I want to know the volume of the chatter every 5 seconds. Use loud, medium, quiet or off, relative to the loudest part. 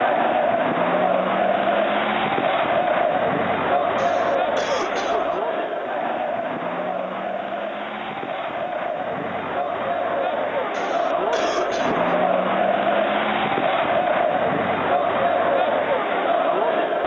loud, medium, loud, loud.